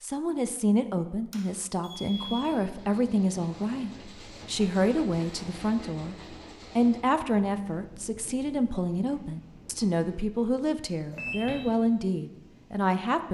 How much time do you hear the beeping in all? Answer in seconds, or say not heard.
2 s.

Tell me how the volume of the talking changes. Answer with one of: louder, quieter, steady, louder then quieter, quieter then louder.
steady.